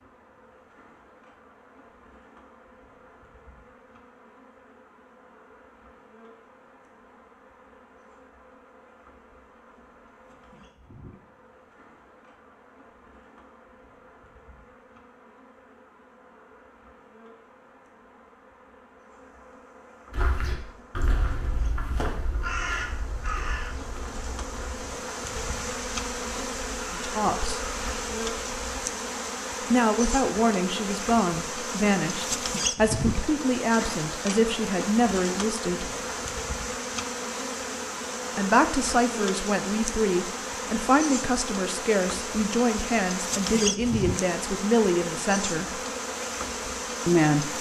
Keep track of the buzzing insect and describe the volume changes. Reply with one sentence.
The loudness of the buzzing insect goes up.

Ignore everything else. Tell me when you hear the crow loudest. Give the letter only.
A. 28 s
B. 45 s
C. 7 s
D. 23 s
D.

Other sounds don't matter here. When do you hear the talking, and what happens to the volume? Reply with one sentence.
You can hear the talking briefly from 26.9 to 27.6 s; from 29.7 to 35.9 s, at a steady volume; from 38.4 to 45.8 s, at a steady volume; and briefly from 47.0 to 47.5 s.